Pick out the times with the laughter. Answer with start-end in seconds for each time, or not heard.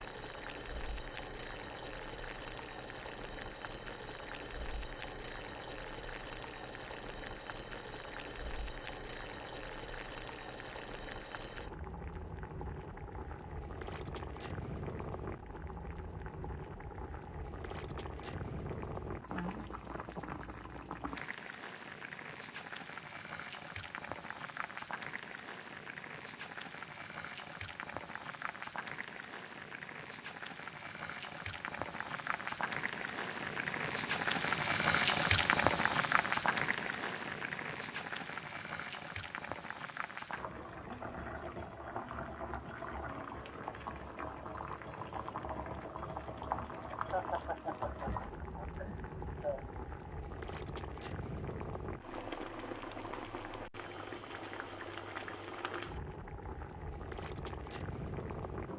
47.1-49.9.